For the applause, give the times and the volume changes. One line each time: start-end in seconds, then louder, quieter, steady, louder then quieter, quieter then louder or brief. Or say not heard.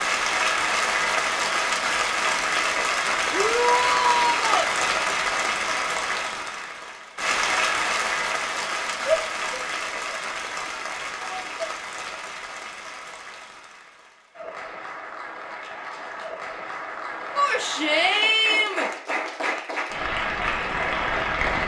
0.0-21.6 quieter then louder.